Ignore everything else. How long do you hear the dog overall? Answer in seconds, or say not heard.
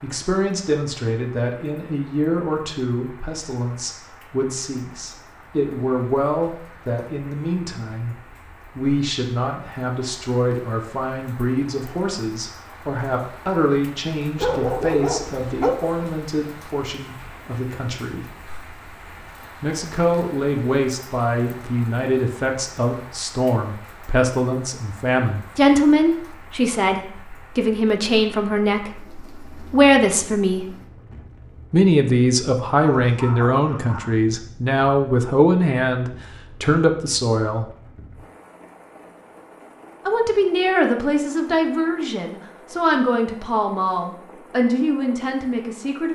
3 s.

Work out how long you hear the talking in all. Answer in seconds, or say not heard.
41 s.